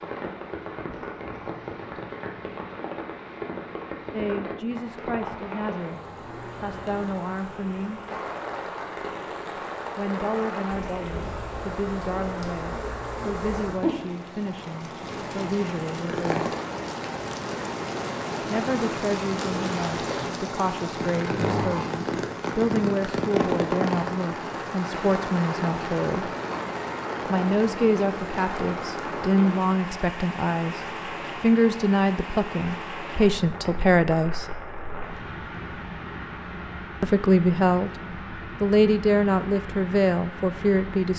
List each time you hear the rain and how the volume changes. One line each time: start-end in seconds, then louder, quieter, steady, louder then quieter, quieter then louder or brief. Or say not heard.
0.0-41.1 louder then quieter.